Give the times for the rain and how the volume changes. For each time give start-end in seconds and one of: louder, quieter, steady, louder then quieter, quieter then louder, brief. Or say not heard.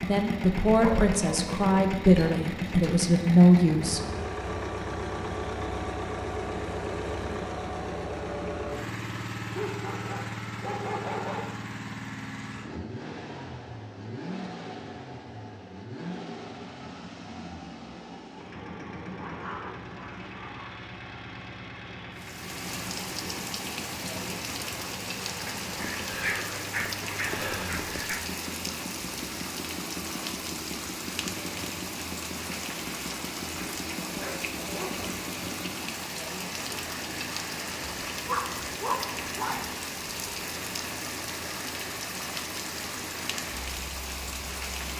22.1-44.9 steady.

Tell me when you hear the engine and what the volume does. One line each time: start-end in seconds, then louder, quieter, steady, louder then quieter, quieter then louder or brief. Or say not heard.
0.0-44.9 quieter.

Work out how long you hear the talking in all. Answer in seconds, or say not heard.
4 s.